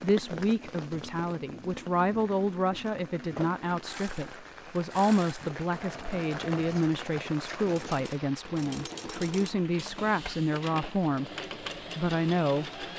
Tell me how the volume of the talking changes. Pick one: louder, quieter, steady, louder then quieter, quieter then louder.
steady.